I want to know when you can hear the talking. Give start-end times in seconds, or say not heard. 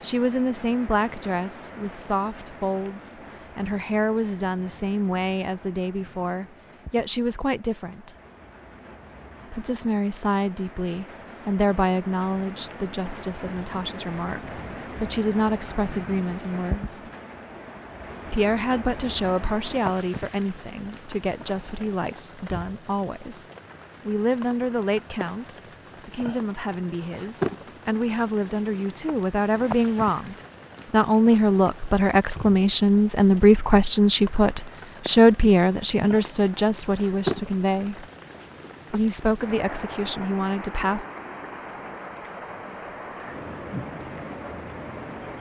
0.0-8.2, 9.5-17.0, 18.2-23.4, 24.1-38.0, 38.9-41.0.